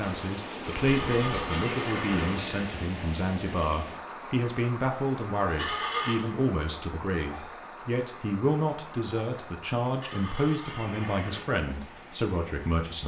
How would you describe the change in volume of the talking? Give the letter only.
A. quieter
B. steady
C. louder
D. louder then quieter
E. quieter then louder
B.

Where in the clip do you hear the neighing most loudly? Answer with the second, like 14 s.
6 s.